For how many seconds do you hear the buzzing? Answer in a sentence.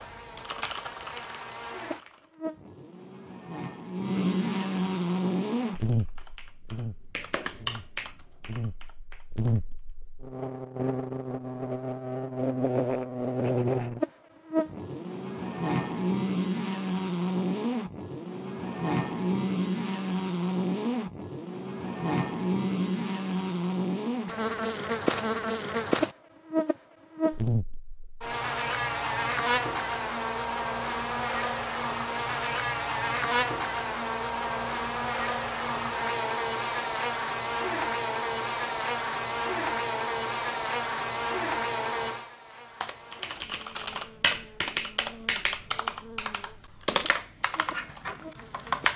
You can hear the buzzing for 49 seconds altogether.